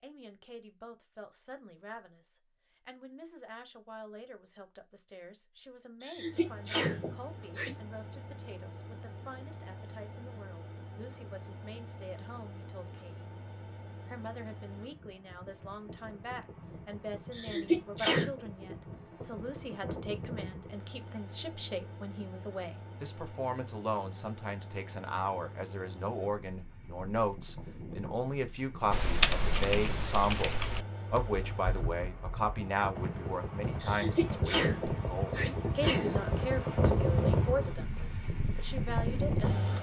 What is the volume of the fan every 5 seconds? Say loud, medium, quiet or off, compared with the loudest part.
off, quiet, quiet, quiet, quiet, quiet, medium, loud.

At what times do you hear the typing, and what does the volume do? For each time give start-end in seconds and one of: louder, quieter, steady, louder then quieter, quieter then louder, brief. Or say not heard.
28.9-35.0 quieter.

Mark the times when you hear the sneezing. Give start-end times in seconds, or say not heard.
6.0-7.8, 17.4-18.4, 33.8-36.4.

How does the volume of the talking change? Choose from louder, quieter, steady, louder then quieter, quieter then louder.
louder.